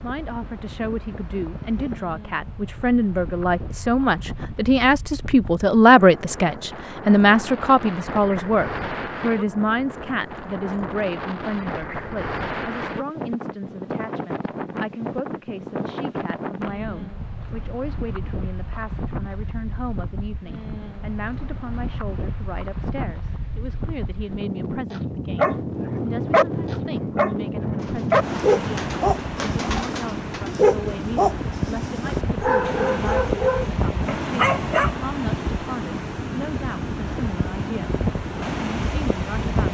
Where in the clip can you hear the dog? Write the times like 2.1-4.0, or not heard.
24.9-35.0.